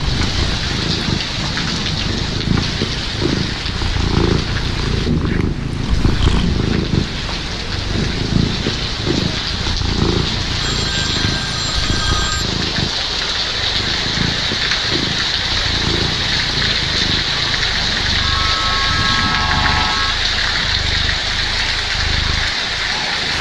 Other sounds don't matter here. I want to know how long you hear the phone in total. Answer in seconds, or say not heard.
5 s.